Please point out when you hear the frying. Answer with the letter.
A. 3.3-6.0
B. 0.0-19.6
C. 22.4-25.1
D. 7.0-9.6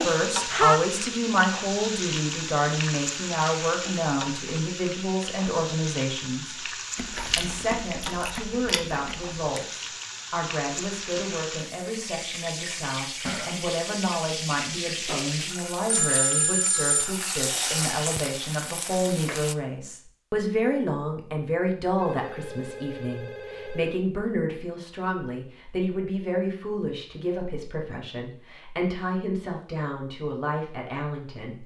B.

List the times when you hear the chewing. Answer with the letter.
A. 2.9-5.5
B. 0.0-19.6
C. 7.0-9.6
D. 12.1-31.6
C.